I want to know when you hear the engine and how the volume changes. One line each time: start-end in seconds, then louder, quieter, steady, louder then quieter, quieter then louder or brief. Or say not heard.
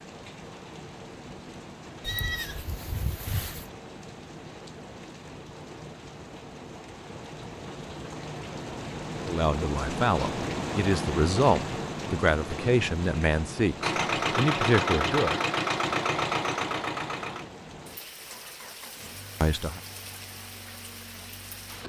13.8-21.8 quieter.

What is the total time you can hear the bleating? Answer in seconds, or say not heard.
2 s.